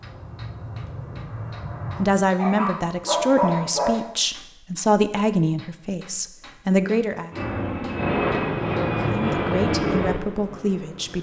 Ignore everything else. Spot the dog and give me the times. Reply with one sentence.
The dog can be heard from 1.9 to 4.0 s.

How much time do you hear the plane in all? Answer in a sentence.
You can hear the plane for 6 seconds altogether.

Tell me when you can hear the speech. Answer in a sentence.
The speech can be heard from 1.9 to 7.3 s and from 9.1 to 11.1 s.